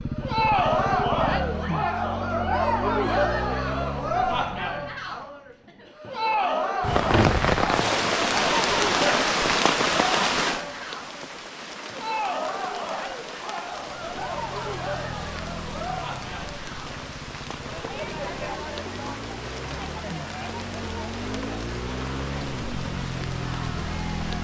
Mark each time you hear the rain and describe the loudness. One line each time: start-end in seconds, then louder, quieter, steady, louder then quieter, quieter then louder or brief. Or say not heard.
6.8-24.3 quieter.